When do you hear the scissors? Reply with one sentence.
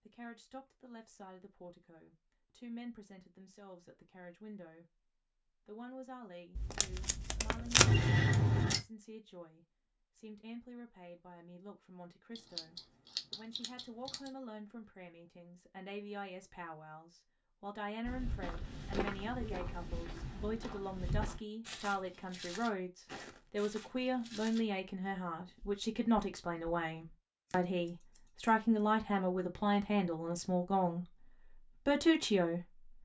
You can hear the scissors from 7.8 to 8.8 s, from 12.3 to 14.3 s and from 27.5 to 28.6 s.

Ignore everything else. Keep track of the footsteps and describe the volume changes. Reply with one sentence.
The volume of the footsteps goes down.